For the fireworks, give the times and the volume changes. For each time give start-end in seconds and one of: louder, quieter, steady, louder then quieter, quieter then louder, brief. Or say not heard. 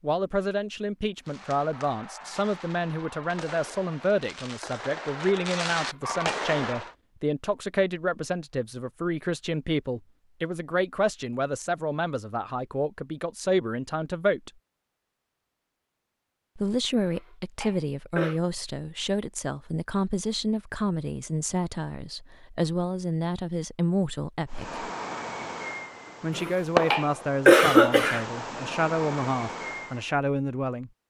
1.2-7.0 louder
24.4-30.1 louder then quieter.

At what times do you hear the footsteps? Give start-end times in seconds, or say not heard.
not heard.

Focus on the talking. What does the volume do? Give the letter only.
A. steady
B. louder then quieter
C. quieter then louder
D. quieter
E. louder
A.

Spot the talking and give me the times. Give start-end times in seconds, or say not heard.
0.0-14.5, 16.6-24.9, 26.2-30.9.